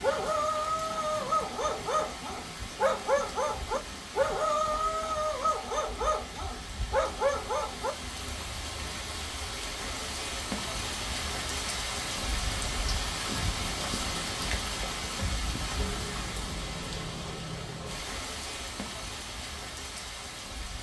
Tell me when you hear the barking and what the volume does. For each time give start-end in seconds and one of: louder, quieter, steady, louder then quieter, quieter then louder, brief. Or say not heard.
0.0-8.0 steady.